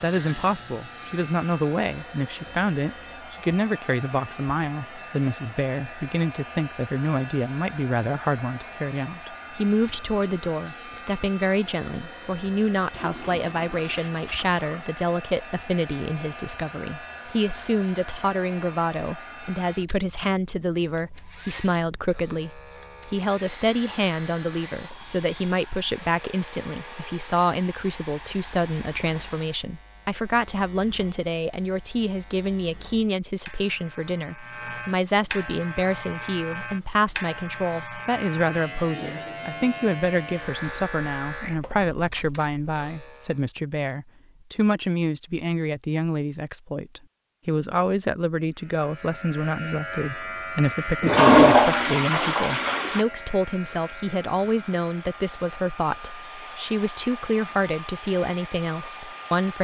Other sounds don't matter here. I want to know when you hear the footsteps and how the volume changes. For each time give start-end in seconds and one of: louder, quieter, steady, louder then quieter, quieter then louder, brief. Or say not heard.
not heard.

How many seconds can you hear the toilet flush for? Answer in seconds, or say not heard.
4 s.